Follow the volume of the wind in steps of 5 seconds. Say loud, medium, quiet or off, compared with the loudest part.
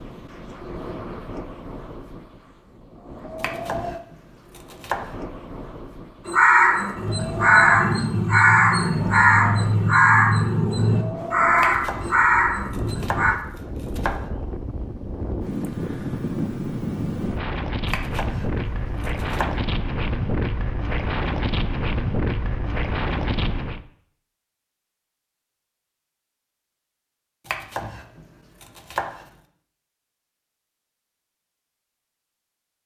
medium, medium, medium, loud, loud, off, off.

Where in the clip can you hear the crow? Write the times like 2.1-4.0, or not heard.
6.2-13.3.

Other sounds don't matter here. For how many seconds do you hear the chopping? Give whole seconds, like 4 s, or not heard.
8 s.